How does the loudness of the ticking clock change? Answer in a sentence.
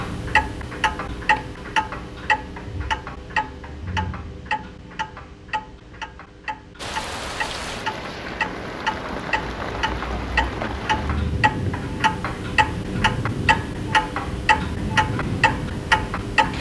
The volume of the ticking clock goes down, then up.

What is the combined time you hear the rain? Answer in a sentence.
You can hear the rain for 10 seconds altogether.